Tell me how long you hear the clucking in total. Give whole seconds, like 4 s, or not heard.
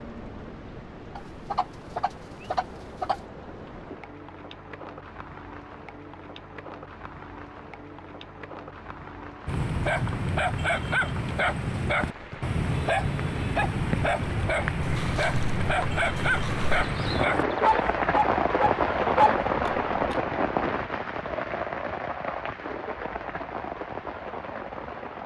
4 s.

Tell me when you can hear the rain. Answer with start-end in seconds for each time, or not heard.
0.0-25.2.